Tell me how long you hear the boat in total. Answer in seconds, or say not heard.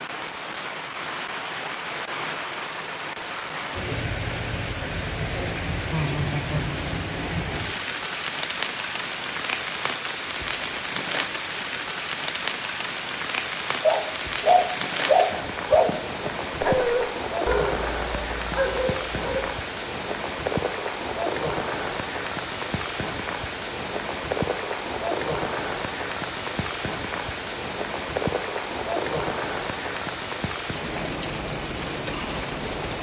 not heard.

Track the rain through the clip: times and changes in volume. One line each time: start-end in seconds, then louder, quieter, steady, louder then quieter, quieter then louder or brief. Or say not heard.
0.0-32.9 steady.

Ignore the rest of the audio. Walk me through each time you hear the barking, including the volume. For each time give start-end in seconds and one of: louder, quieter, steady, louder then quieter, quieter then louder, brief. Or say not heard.
13.8-19.4 quieter.